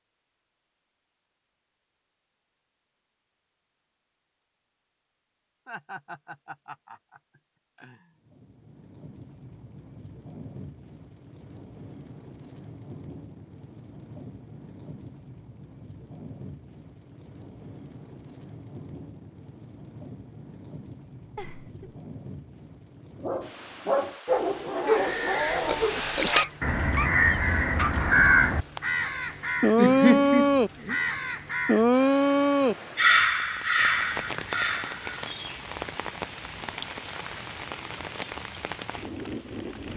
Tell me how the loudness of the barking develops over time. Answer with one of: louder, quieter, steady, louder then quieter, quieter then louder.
quieter.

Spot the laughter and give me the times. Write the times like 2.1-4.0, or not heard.
5.7-8.1, 21.4-22.0, 29.8-31.1.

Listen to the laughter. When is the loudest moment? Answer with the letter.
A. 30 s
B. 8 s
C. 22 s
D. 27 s
A.